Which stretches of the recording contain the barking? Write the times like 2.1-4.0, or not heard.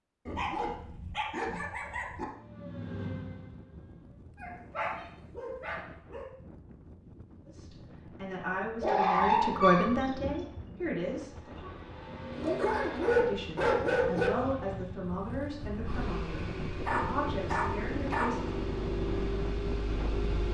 0.2-2.2, 4.4-6.2, 8.8-10.7, 12.3-14.3, 16.9-18.3.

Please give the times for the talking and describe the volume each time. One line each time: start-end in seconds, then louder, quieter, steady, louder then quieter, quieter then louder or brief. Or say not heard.
7.5-11.7 louder then quieter
13.2-18.5 steady.